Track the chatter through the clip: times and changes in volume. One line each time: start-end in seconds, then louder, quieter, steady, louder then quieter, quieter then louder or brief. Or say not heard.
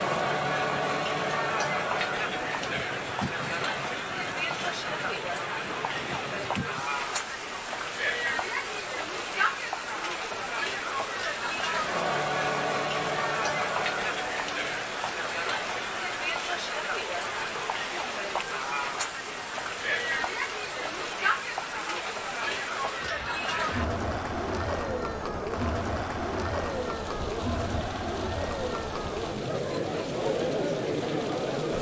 0.0-31.7 steady.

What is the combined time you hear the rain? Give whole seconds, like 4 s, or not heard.
32 s.